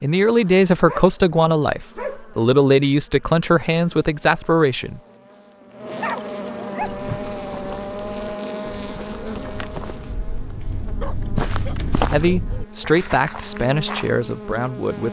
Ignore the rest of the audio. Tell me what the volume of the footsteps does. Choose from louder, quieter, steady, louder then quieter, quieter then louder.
louder then quieter.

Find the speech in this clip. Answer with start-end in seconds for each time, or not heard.
0.0-5.0, 12.1-15.0.